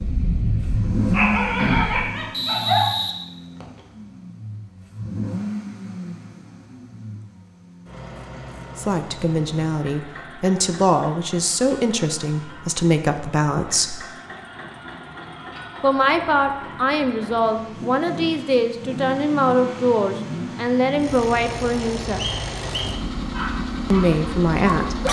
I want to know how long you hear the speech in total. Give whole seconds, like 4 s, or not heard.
13 s.